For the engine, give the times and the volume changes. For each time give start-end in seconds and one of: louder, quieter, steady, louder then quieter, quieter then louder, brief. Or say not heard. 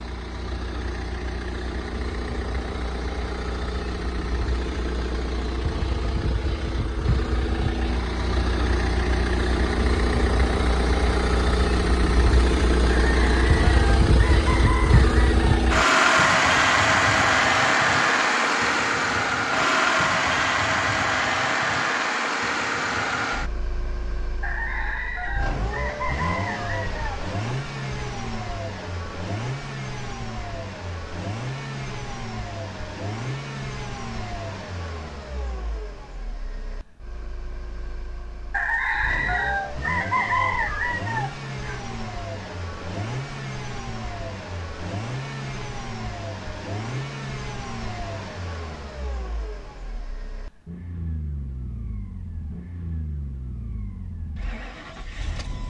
0.0-55.6 louder then quieter.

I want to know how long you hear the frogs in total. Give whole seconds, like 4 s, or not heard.
not heard.